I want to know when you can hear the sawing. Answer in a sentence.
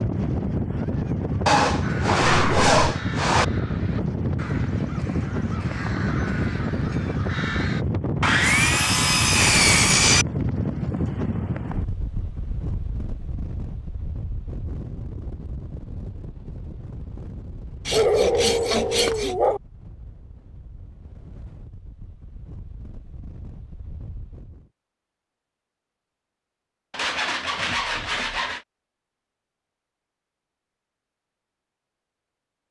The sawing can be heard from 1.4 to 3.5 s, from 8.2 to 10.2 s, from 17.9 to 19.4 s and from 26.9 to 28.6 s.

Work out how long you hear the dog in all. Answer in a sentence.
The dog can be heard for 2 seconds in total.